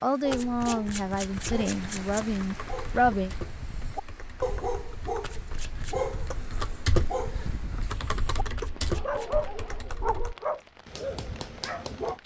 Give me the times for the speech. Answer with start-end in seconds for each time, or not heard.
0.0-3.3.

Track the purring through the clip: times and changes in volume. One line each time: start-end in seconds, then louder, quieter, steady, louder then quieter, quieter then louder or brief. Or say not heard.
not heard.